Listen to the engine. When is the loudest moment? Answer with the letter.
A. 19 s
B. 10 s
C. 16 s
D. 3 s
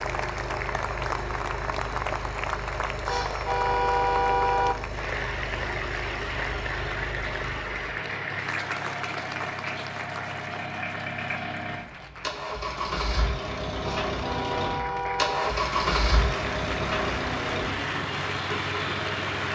C.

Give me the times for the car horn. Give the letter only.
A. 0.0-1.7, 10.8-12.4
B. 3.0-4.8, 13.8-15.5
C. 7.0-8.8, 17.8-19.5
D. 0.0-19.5
B.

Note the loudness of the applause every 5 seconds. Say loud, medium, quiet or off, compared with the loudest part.
loud, loud, medium, loud.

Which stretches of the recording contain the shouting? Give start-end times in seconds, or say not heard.
not heard.